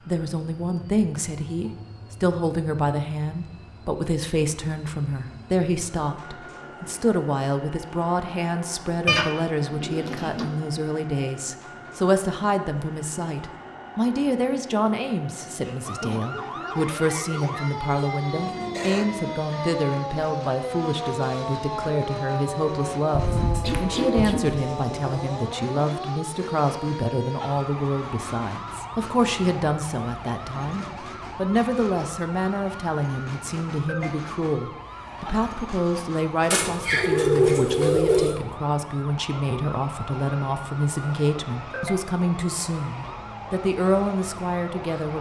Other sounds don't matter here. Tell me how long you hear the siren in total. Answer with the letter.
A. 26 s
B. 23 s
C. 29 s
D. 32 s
C.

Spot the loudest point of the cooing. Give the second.
37 s.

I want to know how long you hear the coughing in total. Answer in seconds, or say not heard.
2 s.